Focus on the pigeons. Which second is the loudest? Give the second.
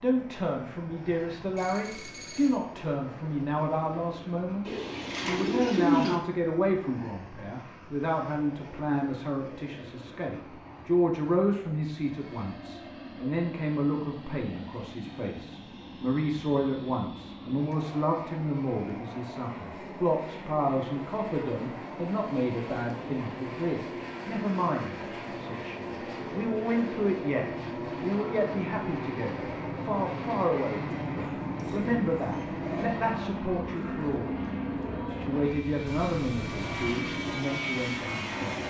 6 s.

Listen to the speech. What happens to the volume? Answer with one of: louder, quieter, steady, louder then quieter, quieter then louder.
steady.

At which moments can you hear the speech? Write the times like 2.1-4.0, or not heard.
0.0-38.6.